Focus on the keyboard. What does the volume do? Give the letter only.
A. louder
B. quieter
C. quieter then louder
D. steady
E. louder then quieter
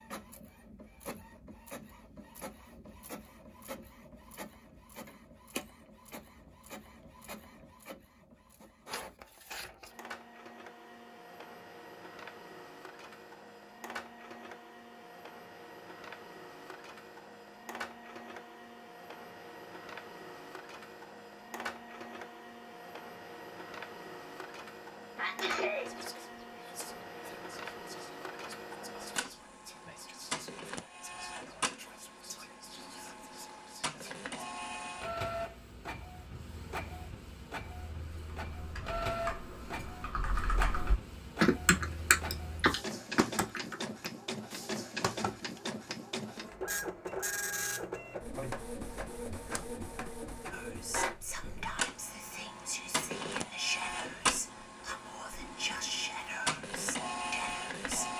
E.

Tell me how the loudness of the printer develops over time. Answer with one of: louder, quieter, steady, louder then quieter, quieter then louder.
louder.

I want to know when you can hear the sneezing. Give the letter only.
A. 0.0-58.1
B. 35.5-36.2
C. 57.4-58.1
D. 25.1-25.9
D.